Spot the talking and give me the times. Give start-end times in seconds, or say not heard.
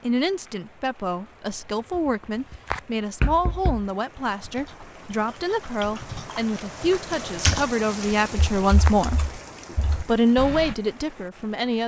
0.0-9.2, 10.0-11.8.